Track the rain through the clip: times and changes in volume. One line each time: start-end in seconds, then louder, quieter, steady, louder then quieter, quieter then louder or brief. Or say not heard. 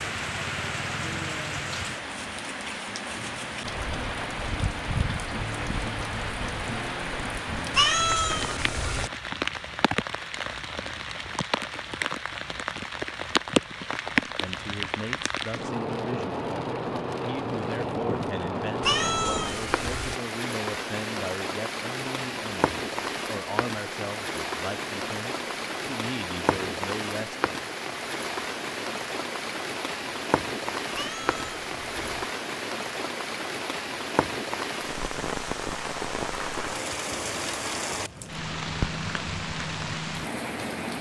0.0-40.9 steady.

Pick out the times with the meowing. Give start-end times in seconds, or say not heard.
7.7-9.1, 18.8-20.2, 30.9-32.2.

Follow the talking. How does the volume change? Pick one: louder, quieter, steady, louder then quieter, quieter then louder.
steady.